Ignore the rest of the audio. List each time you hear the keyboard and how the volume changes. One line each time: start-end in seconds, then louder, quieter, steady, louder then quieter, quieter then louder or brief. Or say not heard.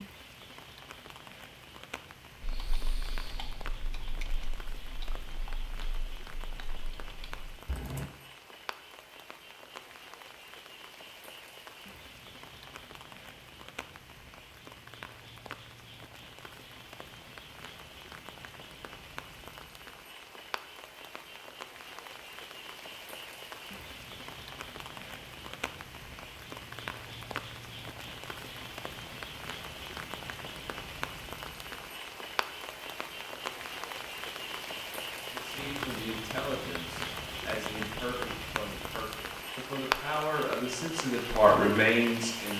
2.4-8.1 quieter.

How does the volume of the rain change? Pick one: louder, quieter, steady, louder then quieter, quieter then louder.
louder.